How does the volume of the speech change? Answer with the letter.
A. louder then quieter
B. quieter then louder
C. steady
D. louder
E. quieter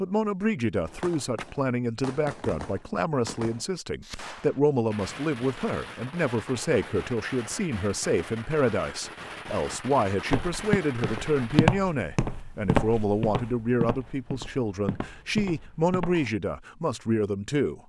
C.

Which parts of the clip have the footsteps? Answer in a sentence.
You can hear the footsteps from 10.3 to 16.2 s.